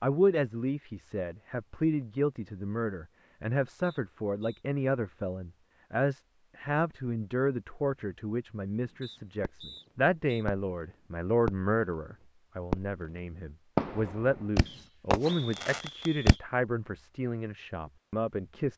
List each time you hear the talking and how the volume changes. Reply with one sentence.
The talking can be heard from 0.0 to 18.7 s, at a steady volume.